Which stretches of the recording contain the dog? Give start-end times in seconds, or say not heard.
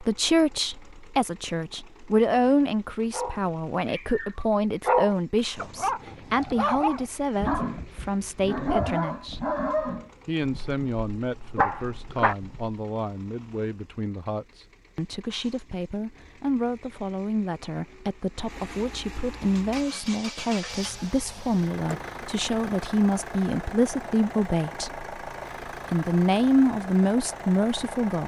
3.1-12.8.